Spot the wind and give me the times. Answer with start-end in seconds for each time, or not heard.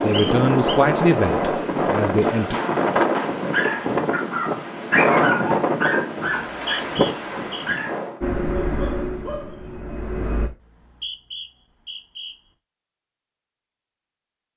0.0-8.2.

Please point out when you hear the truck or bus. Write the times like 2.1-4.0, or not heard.
8.2-10.5.